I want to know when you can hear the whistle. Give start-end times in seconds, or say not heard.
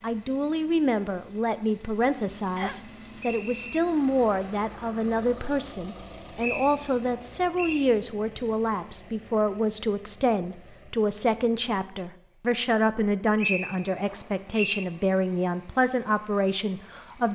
2.5-3.8, 6.0-7.8, 12.9-14.8.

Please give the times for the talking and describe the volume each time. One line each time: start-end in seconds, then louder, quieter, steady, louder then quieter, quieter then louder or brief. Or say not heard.
0.0-17.3 steady.